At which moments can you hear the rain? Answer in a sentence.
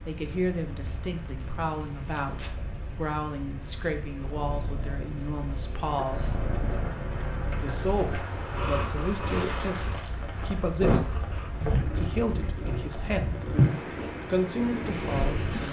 You can hear the rain from 0.0 to 15.6 s.